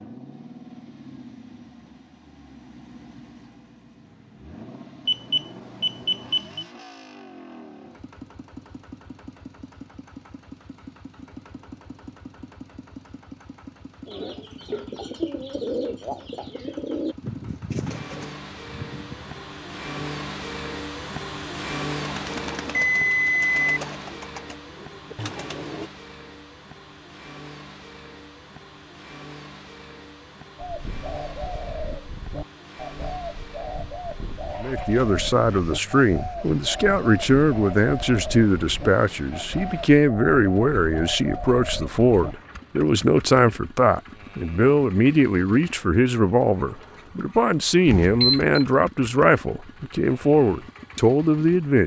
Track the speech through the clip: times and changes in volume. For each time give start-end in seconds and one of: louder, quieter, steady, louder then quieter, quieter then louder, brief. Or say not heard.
34.6-51.8 steady.